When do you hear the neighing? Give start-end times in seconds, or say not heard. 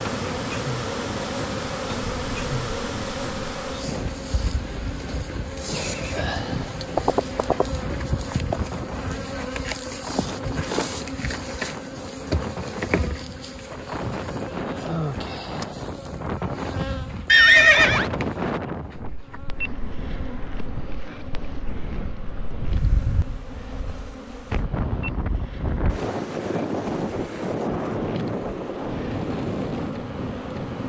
5.8-6.2, 7.0-7.7, 17.2-18.1.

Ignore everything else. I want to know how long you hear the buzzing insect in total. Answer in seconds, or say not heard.
31 s.